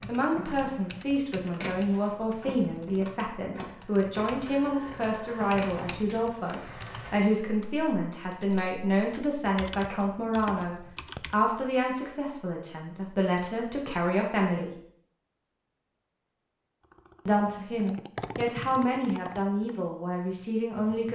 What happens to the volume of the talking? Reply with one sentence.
The loudness of the talking stays about the same.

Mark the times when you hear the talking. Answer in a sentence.
You can hear the talking from 0.1 to 14.7 s and from 17.2 to 21.1 s.